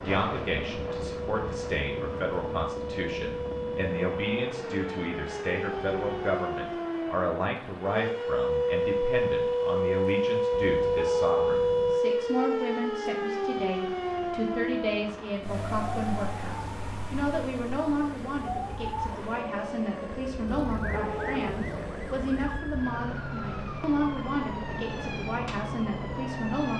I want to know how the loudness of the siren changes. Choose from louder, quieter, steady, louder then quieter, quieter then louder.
louder then quieter.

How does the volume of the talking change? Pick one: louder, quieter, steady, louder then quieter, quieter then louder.
steady.